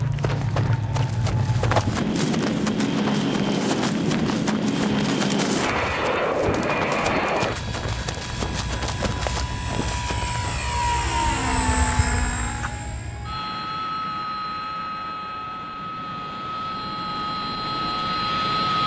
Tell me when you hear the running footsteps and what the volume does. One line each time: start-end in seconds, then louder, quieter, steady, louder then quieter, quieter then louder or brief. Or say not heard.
0.0-10.7 steady.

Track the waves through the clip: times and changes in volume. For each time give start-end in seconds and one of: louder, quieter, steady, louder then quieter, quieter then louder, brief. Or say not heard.
not heard.